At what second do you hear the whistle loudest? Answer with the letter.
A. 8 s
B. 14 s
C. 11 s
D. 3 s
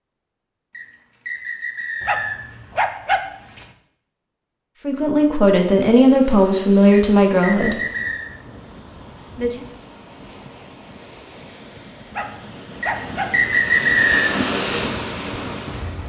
B.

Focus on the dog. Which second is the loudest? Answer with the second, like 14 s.
3 s.